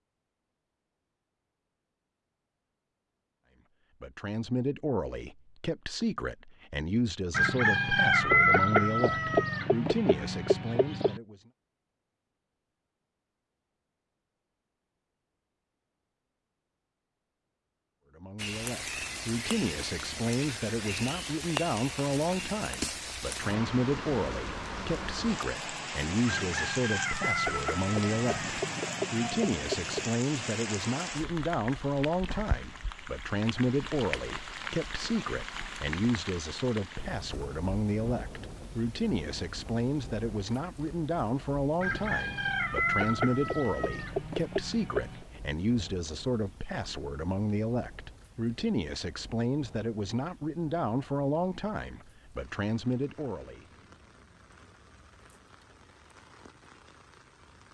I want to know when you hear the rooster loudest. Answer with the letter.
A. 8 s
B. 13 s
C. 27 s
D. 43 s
A.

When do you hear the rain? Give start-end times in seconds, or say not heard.
18.4-57.6.